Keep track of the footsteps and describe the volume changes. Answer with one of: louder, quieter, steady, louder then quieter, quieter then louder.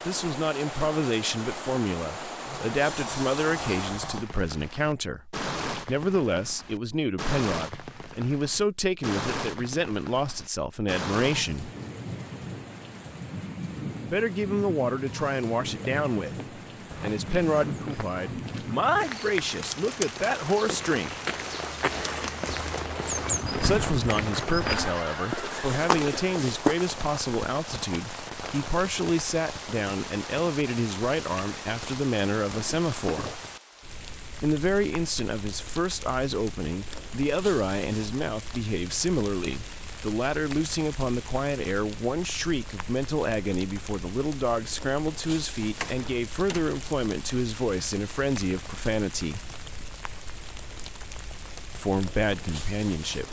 louder.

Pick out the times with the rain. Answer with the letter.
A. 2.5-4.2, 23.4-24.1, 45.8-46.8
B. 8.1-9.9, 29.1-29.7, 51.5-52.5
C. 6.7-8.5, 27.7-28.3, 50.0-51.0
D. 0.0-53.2
D.